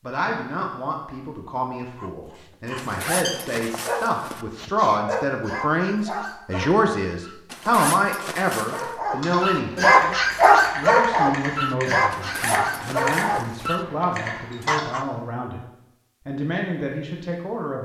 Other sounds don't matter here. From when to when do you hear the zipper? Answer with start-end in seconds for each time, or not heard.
2.8-4.5, 7.5-8.9, 12.1-13.8.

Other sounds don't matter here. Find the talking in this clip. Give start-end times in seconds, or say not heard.
0.0-9.9, 10.8-15.7, 16.2-17.7.